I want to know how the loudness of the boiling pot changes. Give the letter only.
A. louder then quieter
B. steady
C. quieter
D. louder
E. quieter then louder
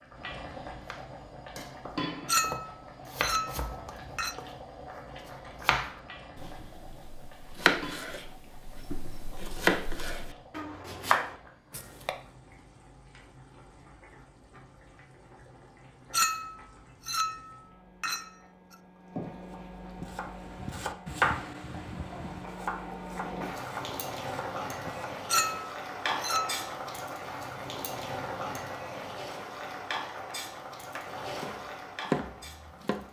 E.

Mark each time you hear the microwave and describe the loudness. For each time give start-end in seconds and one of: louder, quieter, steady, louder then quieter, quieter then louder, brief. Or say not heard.
not heard.